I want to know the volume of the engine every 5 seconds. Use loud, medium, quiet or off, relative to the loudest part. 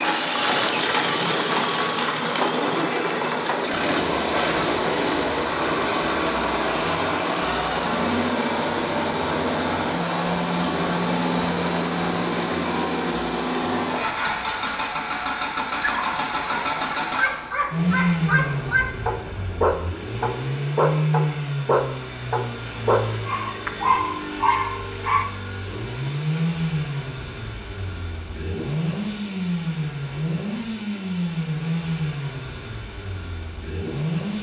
loud, loud, loud, loud, medium, medium, medium.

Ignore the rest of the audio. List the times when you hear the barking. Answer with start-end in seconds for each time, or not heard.
15.8-25.2.